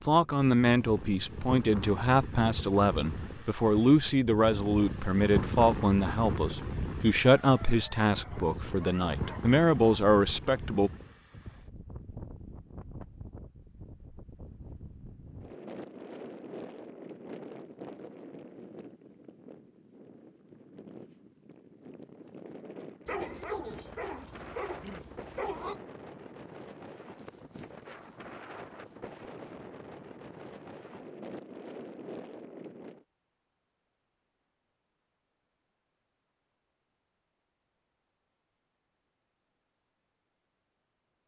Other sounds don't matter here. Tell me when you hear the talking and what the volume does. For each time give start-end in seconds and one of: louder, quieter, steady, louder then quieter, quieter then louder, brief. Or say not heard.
0.1-10.9 steady.